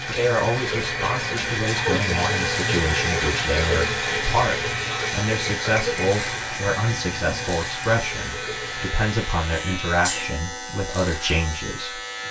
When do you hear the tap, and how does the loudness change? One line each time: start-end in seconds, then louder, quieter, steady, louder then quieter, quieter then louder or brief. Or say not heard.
0.0-9.7 quieter.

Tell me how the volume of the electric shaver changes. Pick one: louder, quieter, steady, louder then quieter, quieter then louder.
steady.